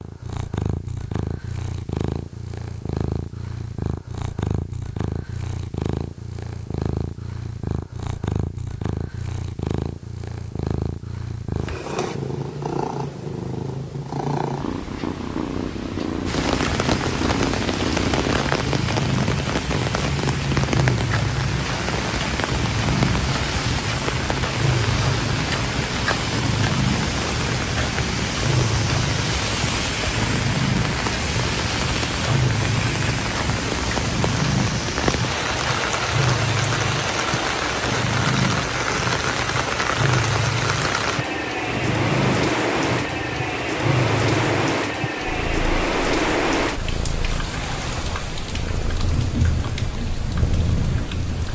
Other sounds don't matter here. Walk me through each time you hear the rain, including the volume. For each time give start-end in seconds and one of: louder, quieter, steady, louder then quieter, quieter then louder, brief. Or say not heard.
16.2-51.4 steady.